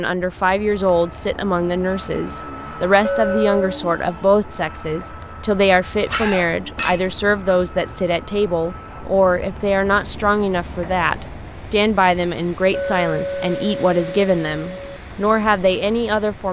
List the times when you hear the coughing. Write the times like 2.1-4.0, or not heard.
6.0-7.0.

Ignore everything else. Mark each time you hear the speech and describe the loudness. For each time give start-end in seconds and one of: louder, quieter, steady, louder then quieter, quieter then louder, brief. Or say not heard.
0.0-16.4 steady.